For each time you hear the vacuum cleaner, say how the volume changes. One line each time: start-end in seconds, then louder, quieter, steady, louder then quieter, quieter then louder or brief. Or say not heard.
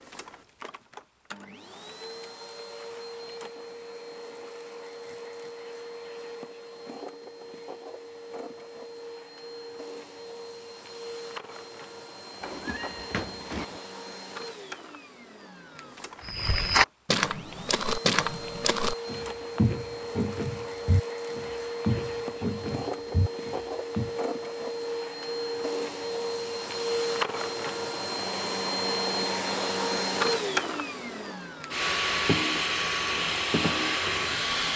0.0-34.7 louder.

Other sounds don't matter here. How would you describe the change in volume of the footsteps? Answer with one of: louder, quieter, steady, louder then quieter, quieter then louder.
quieter.